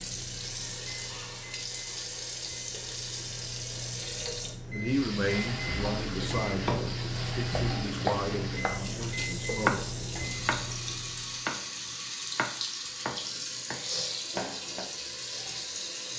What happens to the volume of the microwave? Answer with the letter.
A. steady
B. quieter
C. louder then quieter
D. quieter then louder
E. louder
E.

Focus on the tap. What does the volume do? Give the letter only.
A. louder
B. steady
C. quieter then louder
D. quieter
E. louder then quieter
B.